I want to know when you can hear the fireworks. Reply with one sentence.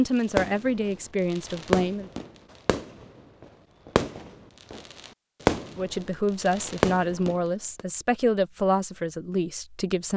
You can hear the fireworks from 0.2 to 7.8 s.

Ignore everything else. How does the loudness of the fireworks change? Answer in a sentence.
The loudness of the fireworks goes down, then up.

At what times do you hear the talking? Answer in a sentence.
You can hear the talking from 0.0 to 2.1 s and from 5.8 to 10.1 s.